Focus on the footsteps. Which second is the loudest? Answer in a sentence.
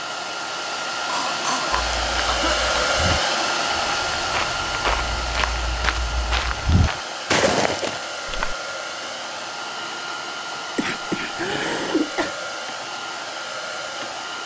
The loudest moment of the footsteps is at 7 seconds.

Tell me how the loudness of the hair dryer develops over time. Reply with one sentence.
The loudness of the hair dryer goes down.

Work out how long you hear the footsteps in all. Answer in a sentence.
You can hear the footsteps for 7 seconds altogether.